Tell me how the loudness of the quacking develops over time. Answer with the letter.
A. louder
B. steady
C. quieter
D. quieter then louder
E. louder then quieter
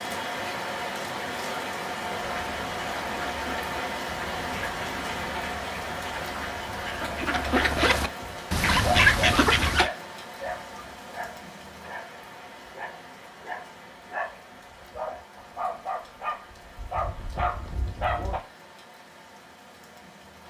A.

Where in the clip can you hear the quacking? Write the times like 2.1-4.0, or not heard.
2.1-9.9.